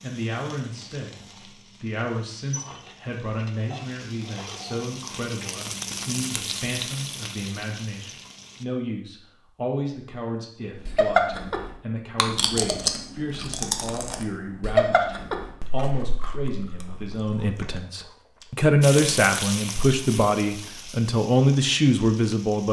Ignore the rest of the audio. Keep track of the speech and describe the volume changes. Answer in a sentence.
The loudness of the speech goes up.